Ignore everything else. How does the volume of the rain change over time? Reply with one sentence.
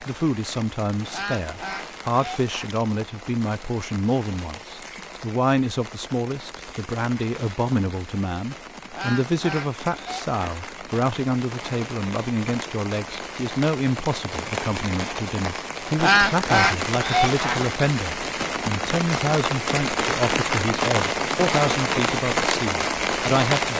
The volume of the rain goes up.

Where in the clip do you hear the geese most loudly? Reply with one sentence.
The loudest moment of the geese is at 16 seconds.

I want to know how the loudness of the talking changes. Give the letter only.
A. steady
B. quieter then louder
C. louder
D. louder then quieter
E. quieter
A.